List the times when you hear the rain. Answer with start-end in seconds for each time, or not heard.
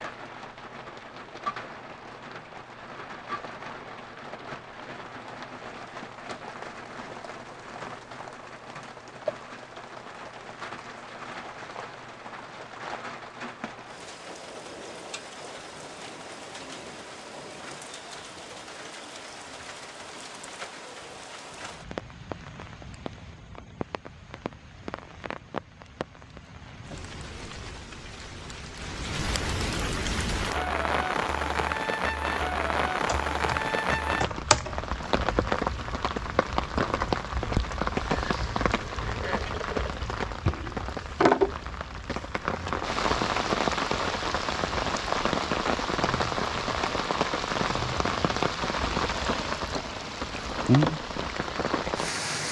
0.0-52.4.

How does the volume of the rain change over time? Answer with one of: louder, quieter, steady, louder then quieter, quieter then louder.
louder.